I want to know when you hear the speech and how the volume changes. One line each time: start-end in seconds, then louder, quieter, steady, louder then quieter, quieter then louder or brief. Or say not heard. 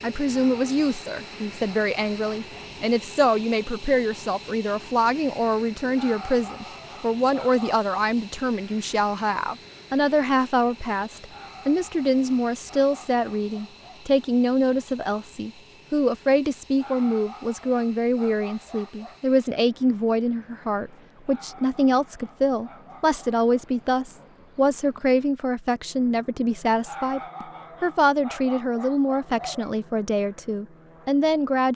0.0-31.7 steady.